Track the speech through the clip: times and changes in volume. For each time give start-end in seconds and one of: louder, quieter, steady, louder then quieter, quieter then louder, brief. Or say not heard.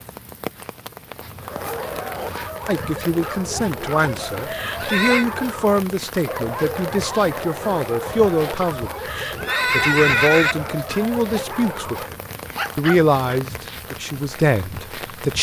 2.6-12.2 steady
12.8-15.3 brief.